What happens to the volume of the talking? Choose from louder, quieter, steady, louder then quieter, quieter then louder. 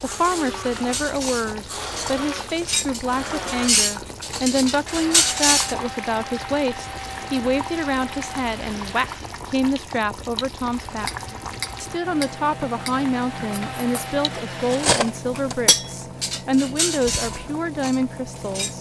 steady.